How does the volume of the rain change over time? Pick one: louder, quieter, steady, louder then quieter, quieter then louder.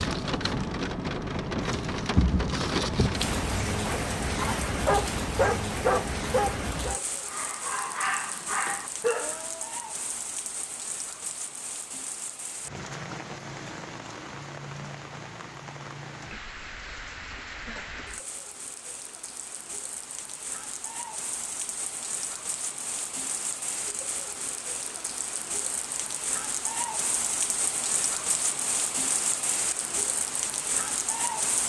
quieter then louder.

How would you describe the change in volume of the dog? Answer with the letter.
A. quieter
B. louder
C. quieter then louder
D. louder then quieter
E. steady
C.